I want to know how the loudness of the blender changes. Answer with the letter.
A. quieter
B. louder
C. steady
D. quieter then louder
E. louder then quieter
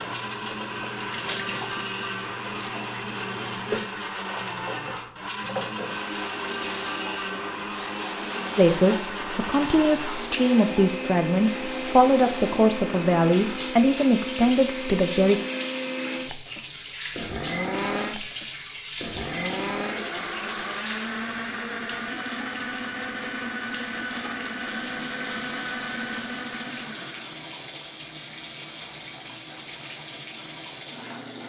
C.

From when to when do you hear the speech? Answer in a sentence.
You can hear the speech from 8.6 to 15.4 s.